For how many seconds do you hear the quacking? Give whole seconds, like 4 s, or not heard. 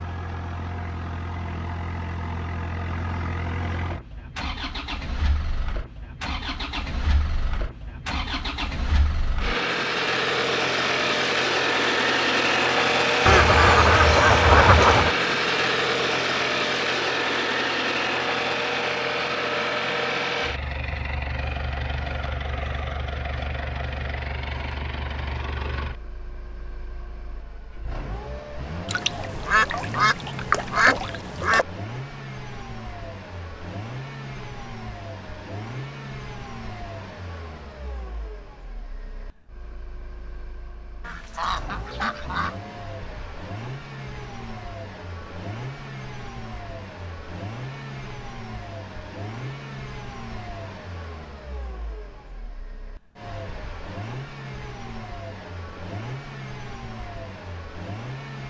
6 s.